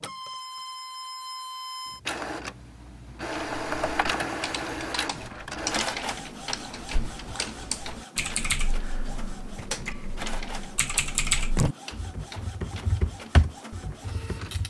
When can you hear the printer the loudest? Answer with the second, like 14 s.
4 s.